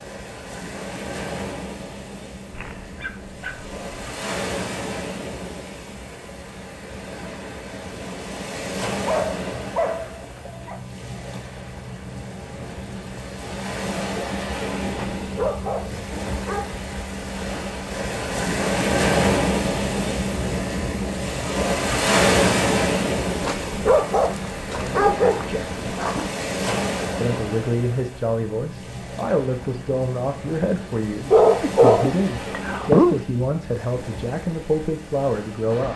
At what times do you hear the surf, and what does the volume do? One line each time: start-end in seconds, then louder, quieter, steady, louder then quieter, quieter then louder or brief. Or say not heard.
0.0-35.9 louder then quieter.